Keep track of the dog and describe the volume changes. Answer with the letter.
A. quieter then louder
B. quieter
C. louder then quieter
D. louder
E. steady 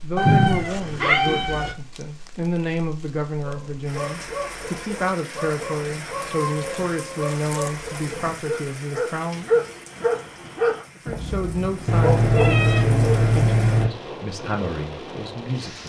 D.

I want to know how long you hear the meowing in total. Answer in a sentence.
You can hear the meowing for 5 seconds altogether.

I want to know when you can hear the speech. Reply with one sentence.
The speech can be heard from 0.0 to 9.7 s and from 10.9 to 15.8 s.